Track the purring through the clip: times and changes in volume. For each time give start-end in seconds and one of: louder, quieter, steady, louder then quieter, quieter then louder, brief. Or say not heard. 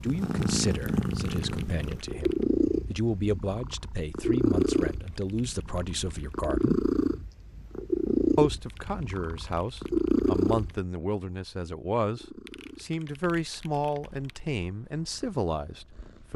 0.0-16.3 quieter.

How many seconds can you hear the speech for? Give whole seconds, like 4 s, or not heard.
15 s.